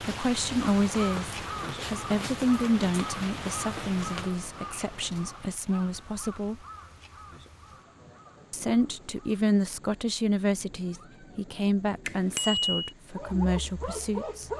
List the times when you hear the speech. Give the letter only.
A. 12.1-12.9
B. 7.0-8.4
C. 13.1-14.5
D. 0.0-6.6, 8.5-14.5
D.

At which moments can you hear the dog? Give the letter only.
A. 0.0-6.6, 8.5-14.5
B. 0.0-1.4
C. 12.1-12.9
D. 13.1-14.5
D.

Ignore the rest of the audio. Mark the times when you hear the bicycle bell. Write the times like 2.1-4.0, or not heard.
12.1-12.9.